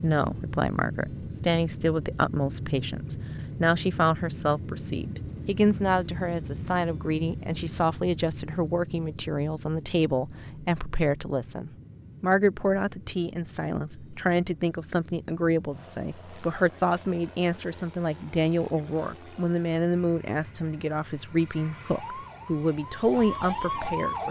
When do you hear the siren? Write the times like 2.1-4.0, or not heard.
21.9-24.2.